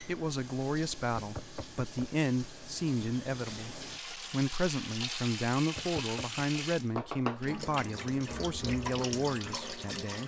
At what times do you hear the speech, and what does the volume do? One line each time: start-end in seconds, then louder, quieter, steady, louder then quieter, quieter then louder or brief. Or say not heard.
0.0-10.2 steady.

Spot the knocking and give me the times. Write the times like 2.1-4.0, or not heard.
1.1-2.1, 5.8-6.4.